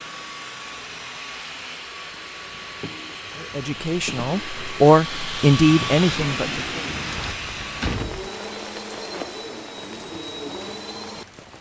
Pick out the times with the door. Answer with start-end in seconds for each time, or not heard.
7.2-8.3.